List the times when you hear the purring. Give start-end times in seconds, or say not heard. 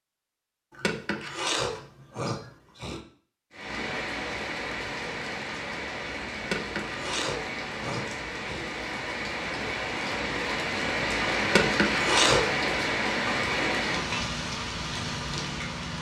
not heard.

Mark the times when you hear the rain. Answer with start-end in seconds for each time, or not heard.
3.5-15.9.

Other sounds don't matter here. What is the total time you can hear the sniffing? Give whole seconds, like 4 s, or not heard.
6 s.